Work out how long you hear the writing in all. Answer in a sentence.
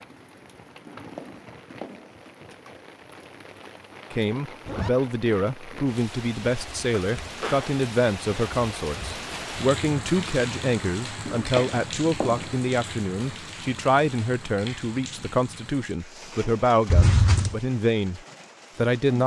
The writing can be heard for 3 seconds in total.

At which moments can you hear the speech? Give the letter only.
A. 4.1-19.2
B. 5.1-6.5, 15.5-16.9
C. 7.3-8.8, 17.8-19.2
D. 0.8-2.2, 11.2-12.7
A.